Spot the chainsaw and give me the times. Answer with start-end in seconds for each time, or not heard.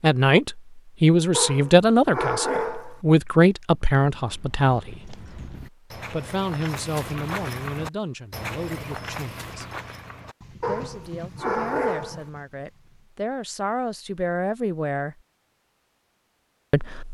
not heard.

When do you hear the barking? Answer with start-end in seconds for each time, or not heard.
1.3-3.0, 10.6-12.2.